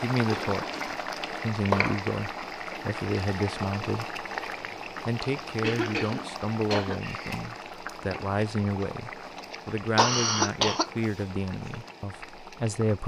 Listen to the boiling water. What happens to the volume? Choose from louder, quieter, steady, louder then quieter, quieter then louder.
quieter.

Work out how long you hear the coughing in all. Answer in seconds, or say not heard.
4 s.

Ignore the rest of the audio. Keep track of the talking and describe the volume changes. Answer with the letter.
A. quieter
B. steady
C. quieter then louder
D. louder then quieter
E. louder
B.